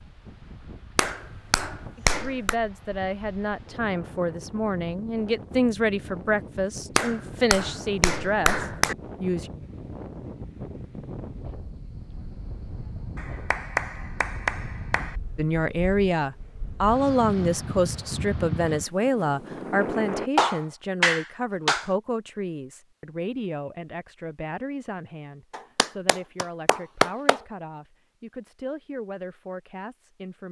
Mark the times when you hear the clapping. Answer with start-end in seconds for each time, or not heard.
0.9-2.5, 7.0-8.9, 13.2-15.2, 20.4-21.9, 25.6-27.4.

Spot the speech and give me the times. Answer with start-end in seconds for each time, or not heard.
1.9-9.5, 15.3-30.4.